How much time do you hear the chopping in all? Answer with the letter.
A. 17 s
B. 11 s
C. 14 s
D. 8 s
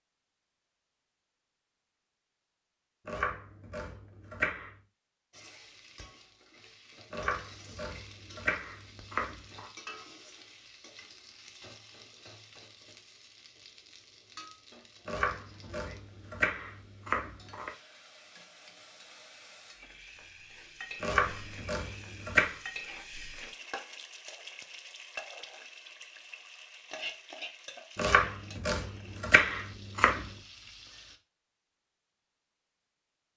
B.